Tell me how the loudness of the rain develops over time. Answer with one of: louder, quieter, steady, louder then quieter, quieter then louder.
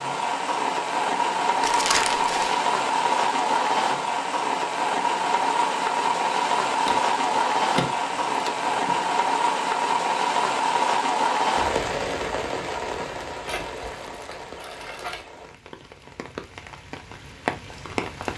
quieter.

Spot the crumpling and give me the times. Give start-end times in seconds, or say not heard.
1.6-2.6, 6.8-9.1, 13.4-15.2.